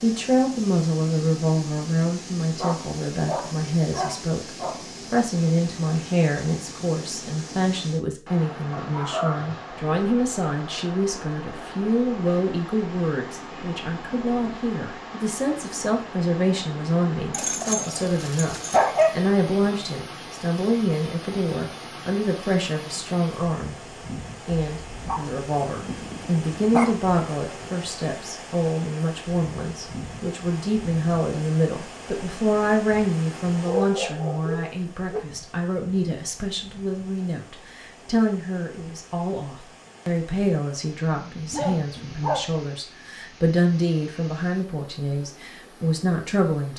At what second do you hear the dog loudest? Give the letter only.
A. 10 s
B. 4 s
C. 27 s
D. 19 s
D.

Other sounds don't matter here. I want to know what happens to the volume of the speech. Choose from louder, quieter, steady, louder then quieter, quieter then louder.
steady.